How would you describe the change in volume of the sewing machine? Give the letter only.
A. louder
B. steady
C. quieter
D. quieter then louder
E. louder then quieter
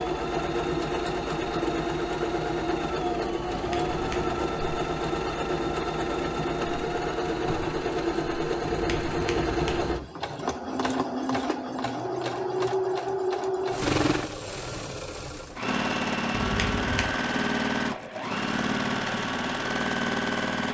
B.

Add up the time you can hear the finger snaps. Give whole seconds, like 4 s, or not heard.
3 s.